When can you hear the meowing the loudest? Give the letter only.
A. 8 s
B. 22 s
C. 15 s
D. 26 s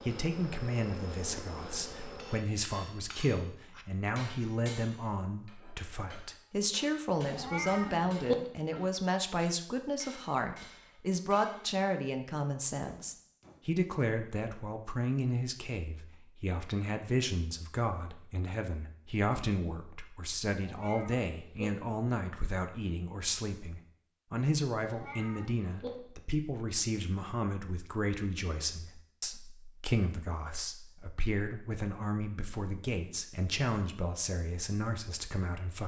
A.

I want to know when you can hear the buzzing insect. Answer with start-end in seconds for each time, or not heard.
0.0-2.5.